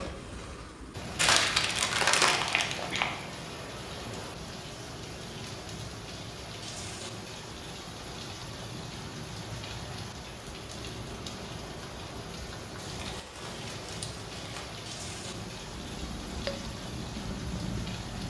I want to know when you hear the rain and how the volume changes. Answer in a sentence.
The rain can be heard from 0.0 to 18.2 s, at a steady volume.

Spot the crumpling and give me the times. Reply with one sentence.
The crumpling can be heard from 1.1 to 3.1 s and from 12.8 to 14.7 s.